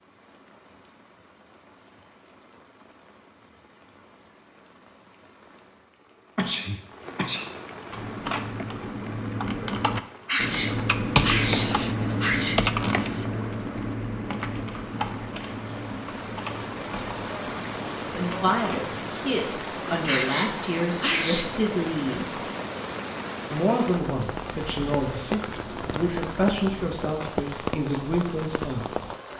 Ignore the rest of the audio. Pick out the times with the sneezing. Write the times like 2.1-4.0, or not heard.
6.3-7.5, 10.2-12.7, 20.1-21.6.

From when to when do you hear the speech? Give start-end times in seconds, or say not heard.
18.1-22.5, 23.5-28.9.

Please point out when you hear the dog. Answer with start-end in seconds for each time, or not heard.
not heard.